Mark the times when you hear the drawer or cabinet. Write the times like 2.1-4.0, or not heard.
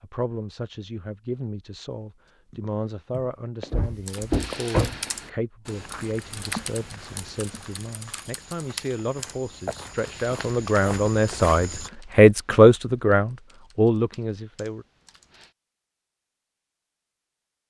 3.7-5.0.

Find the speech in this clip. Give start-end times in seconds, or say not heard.
0.0-14.8.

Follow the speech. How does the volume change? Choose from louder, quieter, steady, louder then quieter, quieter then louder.
louder.